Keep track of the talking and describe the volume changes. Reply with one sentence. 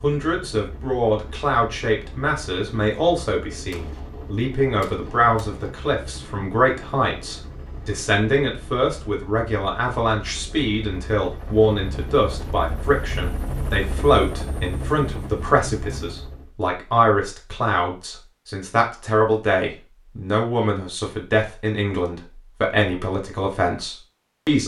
The volume of the talking stays about the same.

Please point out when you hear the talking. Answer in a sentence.
You can hear the talking from 0.0 to 24.6 s.